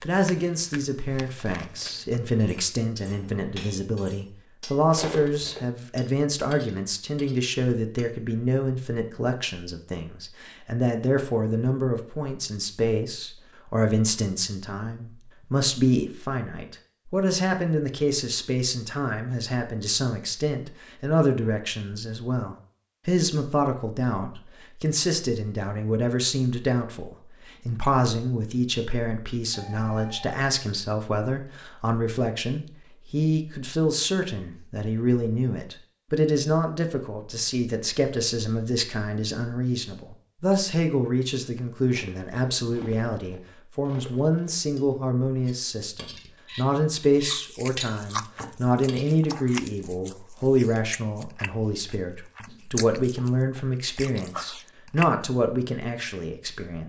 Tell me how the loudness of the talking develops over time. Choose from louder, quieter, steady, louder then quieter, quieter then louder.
steady.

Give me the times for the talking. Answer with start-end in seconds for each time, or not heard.
0.0-56.8.